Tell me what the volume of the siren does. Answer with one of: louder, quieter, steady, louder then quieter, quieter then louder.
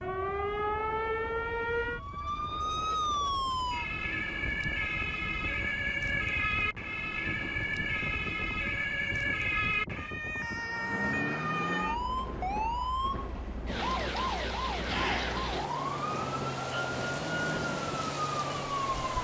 steady.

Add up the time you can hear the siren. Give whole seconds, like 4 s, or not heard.
19 s.